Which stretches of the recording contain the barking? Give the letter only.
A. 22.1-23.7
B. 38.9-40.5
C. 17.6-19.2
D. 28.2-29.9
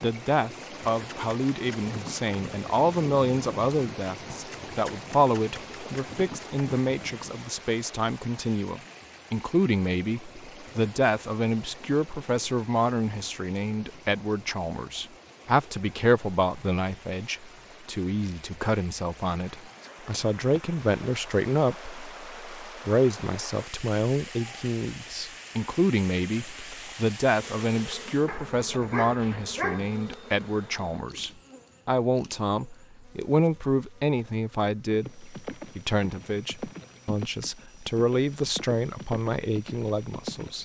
D.